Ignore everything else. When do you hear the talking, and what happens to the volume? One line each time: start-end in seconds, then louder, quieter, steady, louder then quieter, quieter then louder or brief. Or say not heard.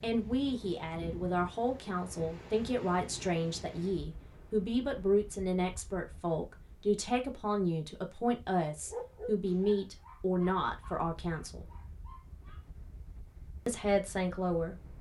0.0-11.7 steady
13.7-14.9 brief.